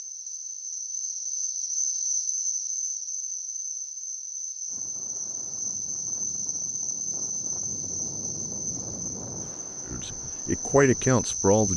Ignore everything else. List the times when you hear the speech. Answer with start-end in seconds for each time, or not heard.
9.8-11.7.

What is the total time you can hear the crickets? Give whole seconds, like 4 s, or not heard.
12 s.